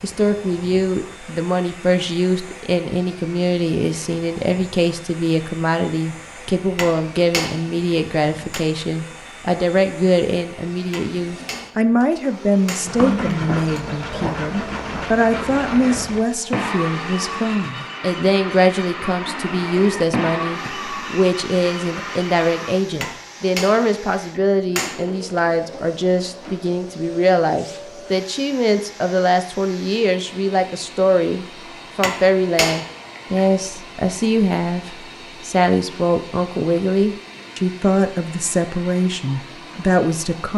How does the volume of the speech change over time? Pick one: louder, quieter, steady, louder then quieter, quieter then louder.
steady.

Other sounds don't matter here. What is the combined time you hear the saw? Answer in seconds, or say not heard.
10 s.